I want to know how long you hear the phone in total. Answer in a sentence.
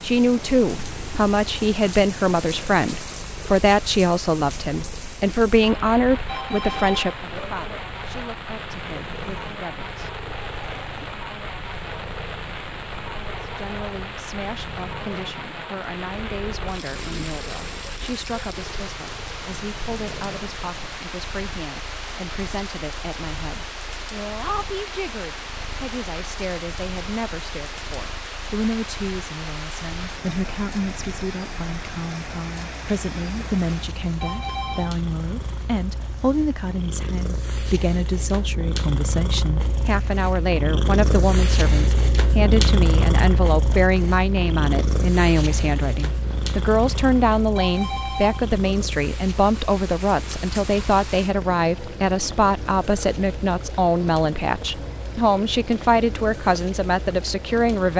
You can hear the phone for 3 seconds altogether.